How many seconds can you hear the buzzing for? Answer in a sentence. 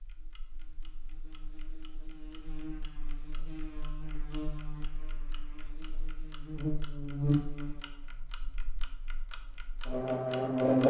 The buzzing can be heard for 11 seconds in total.